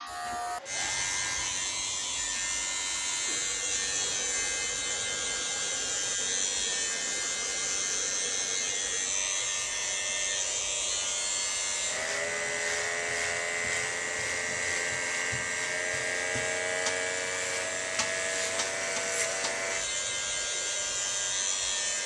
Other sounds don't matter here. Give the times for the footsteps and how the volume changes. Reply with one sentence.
You can't hear the footsteps here.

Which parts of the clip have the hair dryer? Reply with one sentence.
You can hear the hair dryer from 0.2 to 22.0 s.